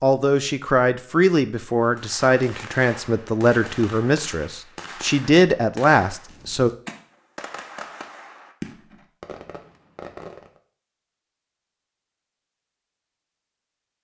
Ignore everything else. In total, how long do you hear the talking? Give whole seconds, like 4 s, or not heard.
7 s.